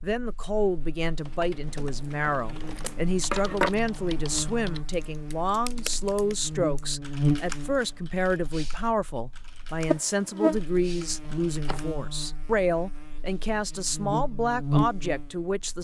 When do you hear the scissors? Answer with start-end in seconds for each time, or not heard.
2.2-3.7, 11.2-11.8.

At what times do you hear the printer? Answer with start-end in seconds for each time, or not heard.
not heard.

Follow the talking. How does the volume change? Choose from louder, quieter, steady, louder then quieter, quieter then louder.
steady.